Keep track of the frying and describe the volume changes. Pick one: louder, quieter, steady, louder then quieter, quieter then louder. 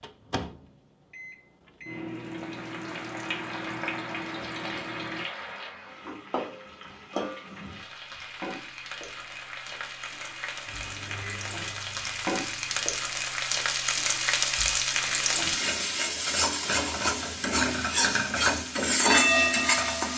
louder.